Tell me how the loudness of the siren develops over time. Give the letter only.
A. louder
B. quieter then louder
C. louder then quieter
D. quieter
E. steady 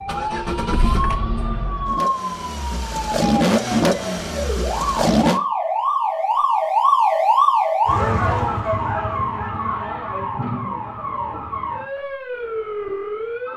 C.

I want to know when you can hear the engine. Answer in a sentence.
The engine can be heard from 0.1 to 5.4 s.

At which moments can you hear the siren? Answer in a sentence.
You can hear the siren from 0.0 to 13.5 s.